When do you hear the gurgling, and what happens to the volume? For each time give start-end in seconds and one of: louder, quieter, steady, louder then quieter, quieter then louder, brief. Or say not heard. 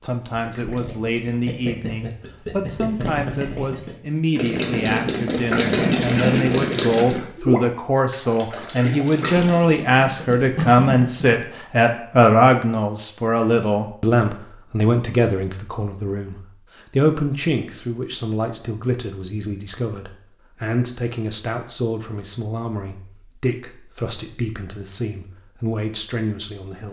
0.2-11.4 louder then quieter.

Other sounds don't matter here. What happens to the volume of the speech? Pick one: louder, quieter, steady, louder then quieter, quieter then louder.
louder then quieter.